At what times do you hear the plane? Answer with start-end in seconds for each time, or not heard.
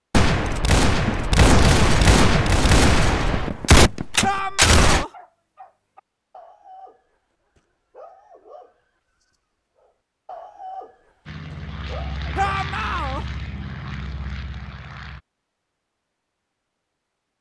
11.2-15.2.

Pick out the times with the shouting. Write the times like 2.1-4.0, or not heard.
4.2-5.1, 12.3-13.2.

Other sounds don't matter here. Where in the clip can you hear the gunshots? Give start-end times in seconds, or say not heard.
0.1-5.0.